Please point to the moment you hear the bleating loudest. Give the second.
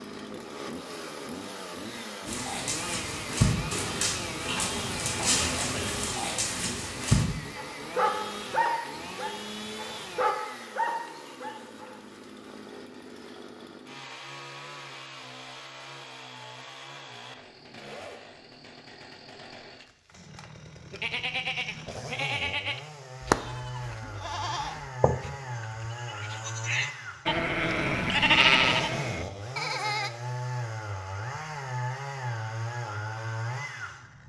28 s.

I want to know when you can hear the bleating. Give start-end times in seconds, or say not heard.
20.9-30.1.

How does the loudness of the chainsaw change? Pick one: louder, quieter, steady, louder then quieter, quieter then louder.
quieter then louder.